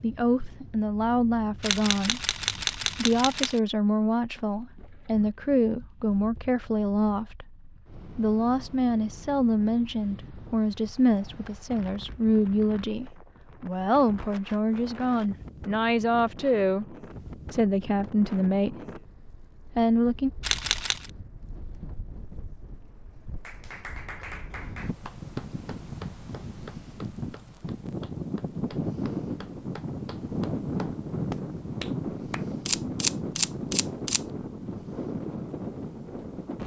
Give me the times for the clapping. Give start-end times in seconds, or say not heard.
23.4-32.5.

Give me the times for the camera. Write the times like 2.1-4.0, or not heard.
1.6-3.6, 20.4-21.1, 32.6-34.2.